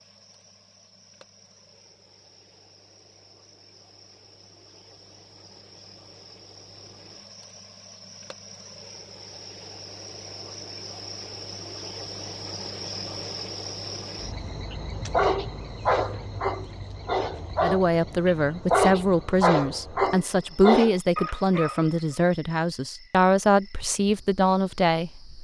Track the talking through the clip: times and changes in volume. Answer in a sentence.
The talking can be heard from 17.6 to 25.3 s, at a steady volume.